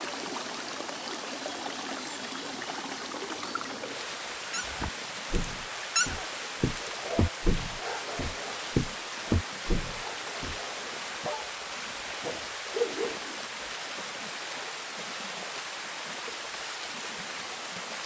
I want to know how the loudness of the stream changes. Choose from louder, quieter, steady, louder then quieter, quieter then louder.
steady.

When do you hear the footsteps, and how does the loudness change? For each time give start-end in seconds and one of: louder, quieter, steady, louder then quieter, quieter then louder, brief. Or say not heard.
4.6-10.6 louder.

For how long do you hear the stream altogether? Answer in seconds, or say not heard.
18 s.